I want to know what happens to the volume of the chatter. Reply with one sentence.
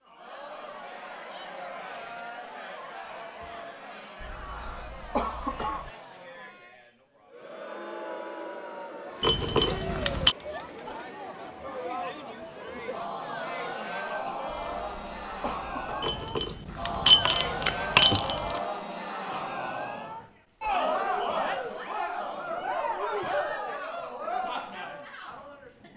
The volume of the chatter goes up.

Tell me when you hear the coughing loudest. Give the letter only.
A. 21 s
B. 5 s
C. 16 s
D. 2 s
B.